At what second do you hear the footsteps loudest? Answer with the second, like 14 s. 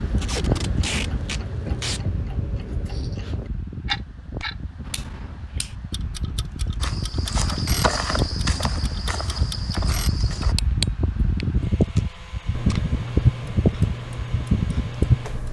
8 s.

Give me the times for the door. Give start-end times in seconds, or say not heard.
not heard.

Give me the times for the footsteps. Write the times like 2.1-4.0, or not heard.
6.8-10.6.